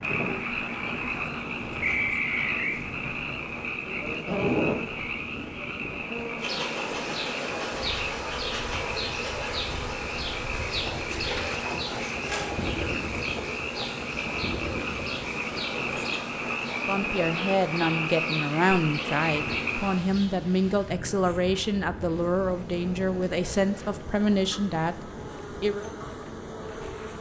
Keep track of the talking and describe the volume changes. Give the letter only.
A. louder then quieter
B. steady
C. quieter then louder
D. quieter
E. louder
B.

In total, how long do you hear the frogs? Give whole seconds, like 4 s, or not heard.
20 s.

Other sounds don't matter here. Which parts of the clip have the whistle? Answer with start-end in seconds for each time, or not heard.
1.8-2.8.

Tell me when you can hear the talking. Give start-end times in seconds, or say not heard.
16.9-25.9.